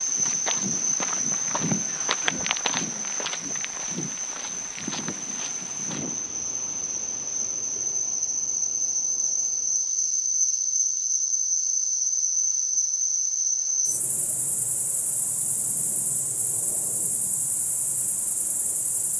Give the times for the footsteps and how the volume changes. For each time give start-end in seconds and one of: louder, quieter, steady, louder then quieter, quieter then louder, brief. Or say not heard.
0.1-6.2 louder then quieter.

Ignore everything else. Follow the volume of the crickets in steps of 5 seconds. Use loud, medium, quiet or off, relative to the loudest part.
loud, loud, loud, medium.